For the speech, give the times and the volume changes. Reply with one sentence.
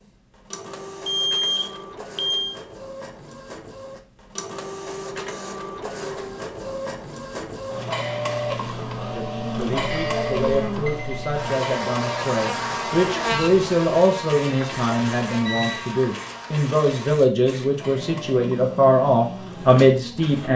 The speech can be heard from 9.1 to 20.5 s, getting louder.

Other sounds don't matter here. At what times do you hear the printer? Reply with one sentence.
The printer can be heard from 0.0 to 20.5 s.